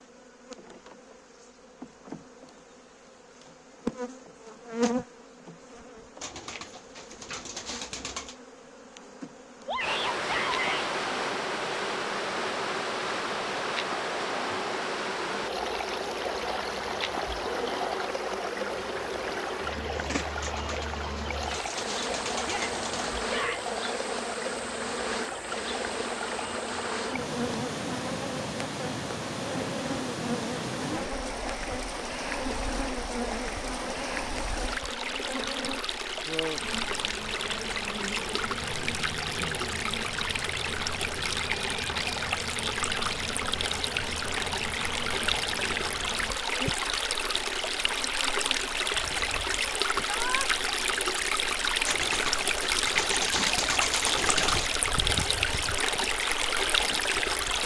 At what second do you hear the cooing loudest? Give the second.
54 s.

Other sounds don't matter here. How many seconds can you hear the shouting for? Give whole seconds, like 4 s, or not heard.
3 s.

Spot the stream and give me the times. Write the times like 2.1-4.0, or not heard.
9.8-57.6.